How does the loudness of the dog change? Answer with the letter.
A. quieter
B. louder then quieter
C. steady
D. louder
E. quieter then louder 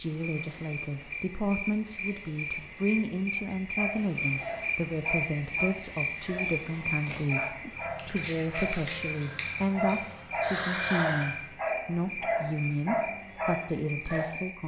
D.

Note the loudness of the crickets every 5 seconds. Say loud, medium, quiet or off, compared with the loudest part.
loud, loud, medium.